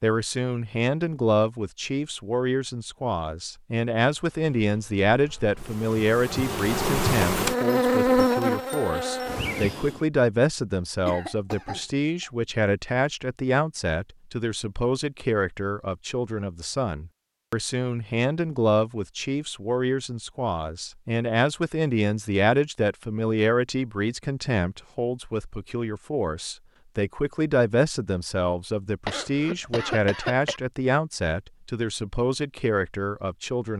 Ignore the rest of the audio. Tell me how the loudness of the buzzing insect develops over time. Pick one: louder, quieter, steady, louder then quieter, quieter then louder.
louder then quieter.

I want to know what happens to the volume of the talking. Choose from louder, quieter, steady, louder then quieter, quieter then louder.
steady.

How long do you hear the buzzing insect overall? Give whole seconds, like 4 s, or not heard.
6 s.